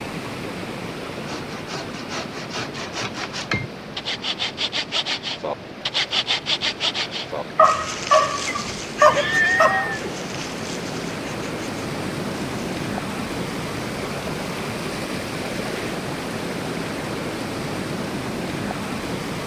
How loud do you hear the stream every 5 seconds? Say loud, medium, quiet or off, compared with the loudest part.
medium, medium, loud, loud.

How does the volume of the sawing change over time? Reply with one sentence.
The volume of the sawing goes up, then down.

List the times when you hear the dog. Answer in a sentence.
The dog can be heard from 7.5 to 9.9 s.